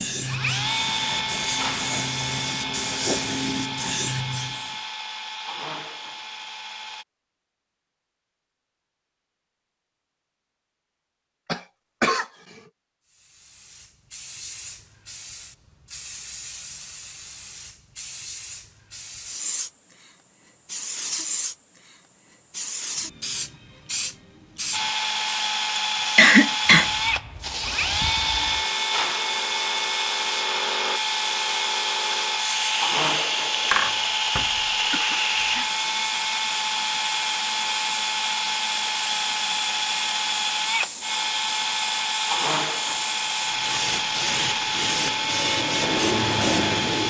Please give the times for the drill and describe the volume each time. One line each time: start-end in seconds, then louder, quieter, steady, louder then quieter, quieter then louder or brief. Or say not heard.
0.1-7.0 quieter
24.7-47.0 steady.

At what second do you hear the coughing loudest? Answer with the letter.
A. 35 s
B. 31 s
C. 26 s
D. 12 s
C.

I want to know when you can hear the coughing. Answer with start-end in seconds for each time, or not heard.
11.4-12.2, 25.8-26.9, 33.7-35.2.